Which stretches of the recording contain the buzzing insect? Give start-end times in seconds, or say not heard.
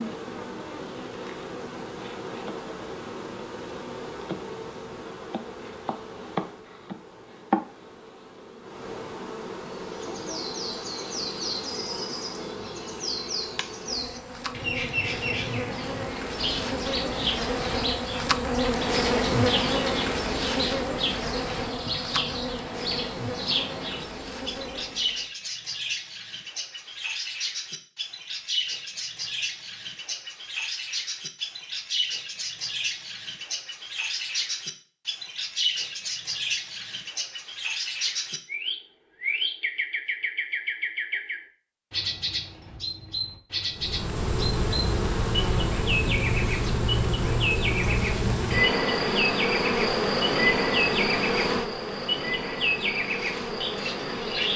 0.0-25.2, 43.8-54.5.